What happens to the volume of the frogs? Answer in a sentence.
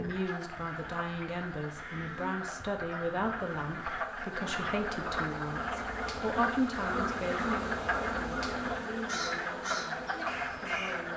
The loudness of the frogs goes up.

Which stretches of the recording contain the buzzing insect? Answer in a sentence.
The buzzing insect can be heard from 0.0 to 11.1 s.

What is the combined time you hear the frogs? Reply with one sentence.
You can hear the frogs for 11 seconds altogether.